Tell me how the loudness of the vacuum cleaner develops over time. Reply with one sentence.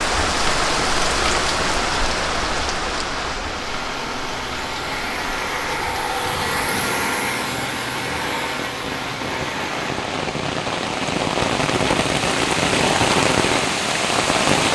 The loudness of the vacuum cleaner goes up, then down.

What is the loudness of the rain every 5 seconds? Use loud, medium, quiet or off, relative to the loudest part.
loud, medium, loud.